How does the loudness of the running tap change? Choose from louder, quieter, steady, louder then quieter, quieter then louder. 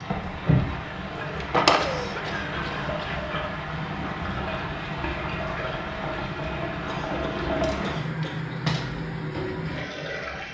steady.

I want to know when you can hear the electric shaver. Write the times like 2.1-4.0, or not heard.
not heard.